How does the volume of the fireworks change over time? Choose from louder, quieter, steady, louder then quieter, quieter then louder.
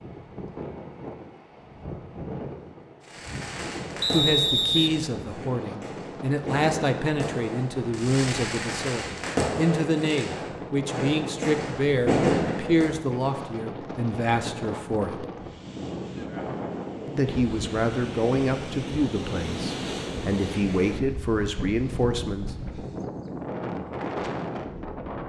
louder.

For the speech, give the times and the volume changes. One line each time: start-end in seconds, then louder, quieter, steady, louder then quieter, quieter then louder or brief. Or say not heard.
4.1-15.2 steady
17.1-22.5 quieter then louder.